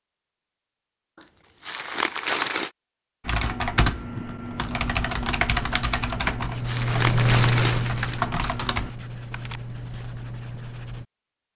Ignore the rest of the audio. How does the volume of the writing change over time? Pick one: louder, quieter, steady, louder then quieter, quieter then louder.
louder then quieter.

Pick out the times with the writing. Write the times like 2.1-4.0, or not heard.
4.7-11.1.